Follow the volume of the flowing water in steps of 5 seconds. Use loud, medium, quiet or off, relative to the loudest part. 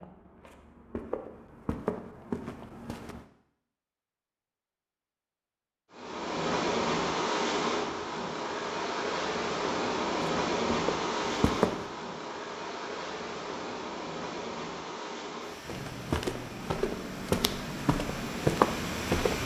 off, loud, loud, medium.